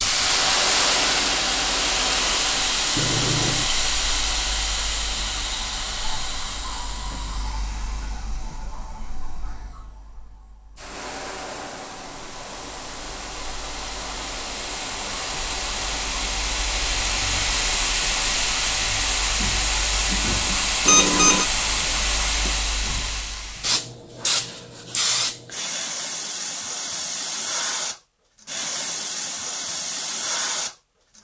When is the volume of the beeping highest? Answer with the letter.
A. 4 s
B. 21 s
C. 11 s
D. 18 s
B.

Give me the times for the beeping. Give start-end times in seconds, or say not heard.
3.0-3.8, 20.9-21.4.